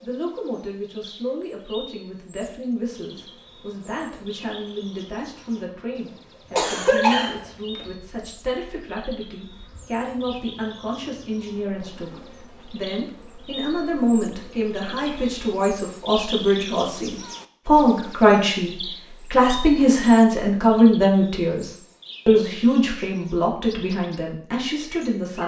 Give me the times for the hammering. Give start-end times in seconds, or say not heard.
not heard.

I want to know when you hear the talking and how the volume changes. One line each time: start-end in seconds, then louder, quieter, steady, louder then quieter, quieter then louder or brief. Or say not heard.
0.0-25.4 louder.